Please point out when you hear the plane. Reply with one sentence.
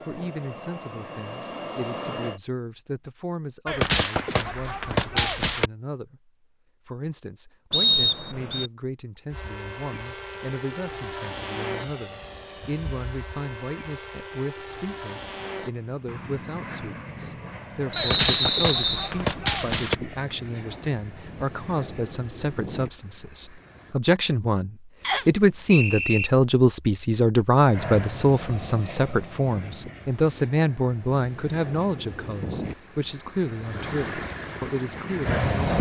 The plane can be heard from 0.0 to 2.4 s, from 9.3 to 23.9 s and from 27.7 to 35.7 s.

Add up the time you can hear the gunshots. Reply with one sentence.
You can hear the gunshots for 4 seconds altogether.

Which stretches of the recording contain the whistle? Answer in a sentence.
You can hear the whistle from 7.7 to 8.7 s, from 17.9 to 19.1 s and from 25.0 to 26.3 s.